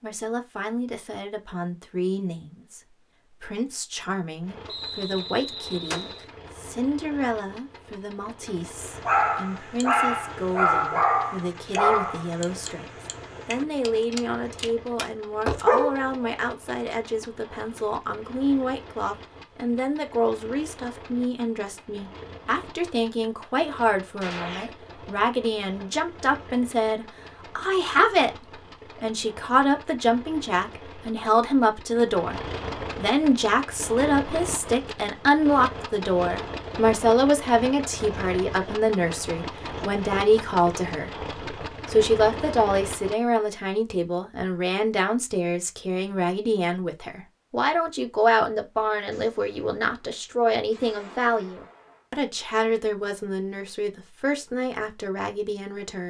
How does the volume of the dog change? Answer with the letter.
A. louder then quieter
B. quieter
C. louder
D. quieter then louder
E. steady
D.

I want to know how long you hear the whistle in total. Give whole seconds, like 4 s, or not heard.
2 s.